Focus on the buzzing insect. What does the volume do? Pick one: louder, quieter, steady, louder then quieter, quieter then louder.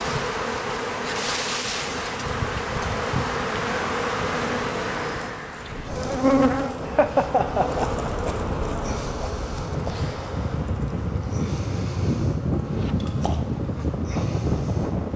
quieter.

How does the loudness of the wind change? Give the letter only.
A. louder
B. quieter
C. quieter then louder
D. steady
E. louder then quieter
A.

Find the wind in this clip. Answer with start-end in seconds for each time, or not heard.
5.5-15.1.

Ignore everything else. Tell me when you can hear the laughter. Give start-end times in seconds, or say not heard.
6.8-8.3.